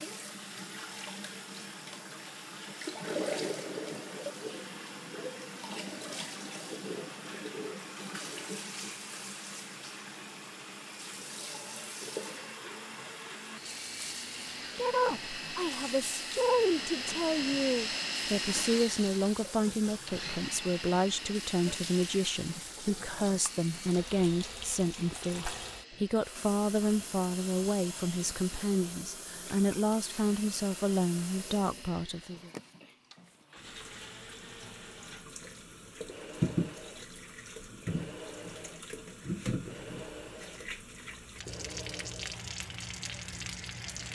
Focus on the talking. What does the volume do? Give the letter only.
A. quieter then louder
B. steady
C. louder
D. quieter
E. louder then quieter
B.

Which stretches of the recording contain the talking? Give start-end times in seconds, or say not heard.
14.8-32.5.